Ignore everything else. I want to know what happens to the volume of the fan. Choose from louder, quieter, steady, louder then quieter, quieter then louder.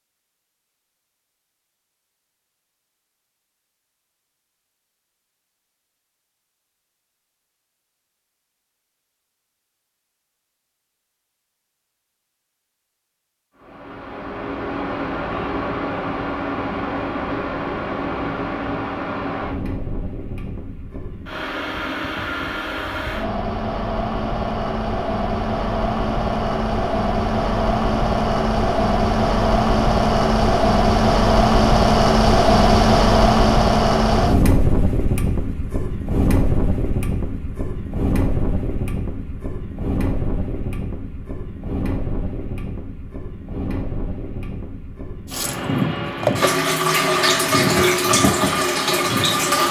louder then quieter.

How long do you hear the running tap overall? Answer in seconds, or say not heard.
4 s.